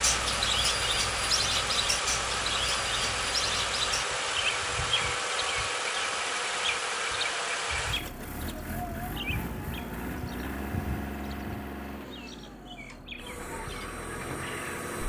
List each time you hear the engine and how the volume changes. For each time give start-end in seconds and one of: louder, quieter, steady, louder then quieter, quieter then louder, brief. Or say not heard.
0.0-15.0 quieter.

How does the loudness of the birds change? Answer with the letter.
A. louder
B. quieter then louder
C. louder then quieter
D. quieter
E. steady
D.